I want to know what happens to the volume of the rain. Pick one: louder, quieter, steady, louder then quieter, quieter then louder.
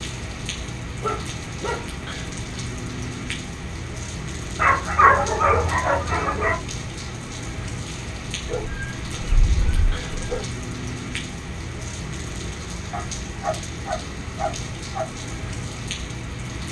steady.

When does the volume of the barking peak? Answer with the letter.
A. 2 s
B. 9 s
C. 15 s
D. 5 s
D.